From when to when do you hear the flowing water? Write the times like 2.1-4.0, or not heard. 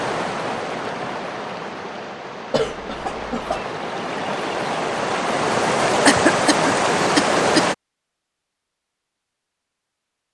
0.0-7.8.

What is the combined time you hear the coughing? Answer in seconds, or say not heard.
3 s.